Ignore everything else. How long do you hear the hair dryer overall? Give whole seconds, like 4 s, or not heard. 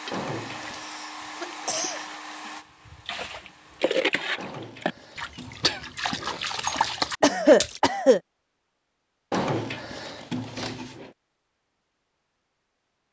4 s.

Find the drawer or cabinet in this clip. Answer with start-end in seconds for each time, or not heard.
0.1-0.9, 4.3-6.4, 9.3-11.1.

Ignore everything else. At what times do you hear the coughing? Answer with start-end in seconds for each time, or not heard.
0.8-2.5, 7.2-8.2.